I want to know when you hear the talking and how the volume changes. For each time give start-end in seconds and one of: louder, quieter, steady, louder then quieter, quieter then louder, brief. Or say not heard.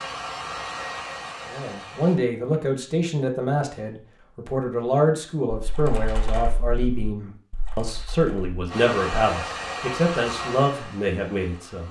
1.4-11.8 steady.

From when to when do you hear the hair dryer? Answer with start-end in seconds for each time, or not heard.
0.0-2.2, 8.7-11.8.